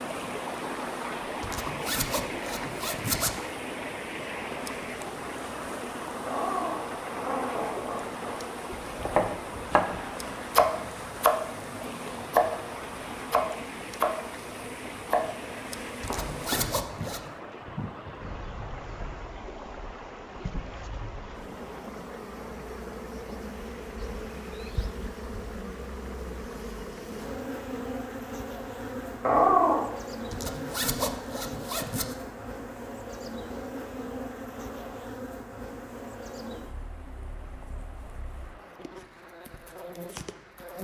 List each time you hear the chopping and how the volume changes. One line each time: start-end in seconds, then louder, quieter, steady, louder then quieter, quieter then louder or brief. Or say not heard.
8.7-16.9 quieter.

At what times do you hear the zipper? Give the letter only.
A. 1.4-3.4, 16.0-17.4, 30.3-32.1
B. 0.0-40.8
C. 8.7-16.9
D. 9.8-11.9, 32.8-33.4
A.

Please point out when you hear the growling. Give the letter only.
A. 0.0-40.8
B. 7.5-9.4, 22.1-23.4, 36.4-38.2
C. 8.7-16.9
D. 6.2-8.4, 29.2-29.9
D.